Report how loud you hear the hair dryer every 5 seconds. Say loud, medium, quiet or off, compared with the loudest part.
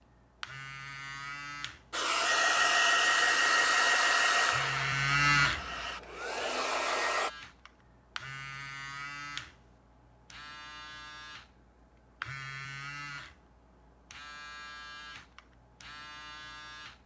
loud, medium, off, off.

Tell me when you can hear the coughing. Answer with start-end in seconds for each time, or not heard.
not heard.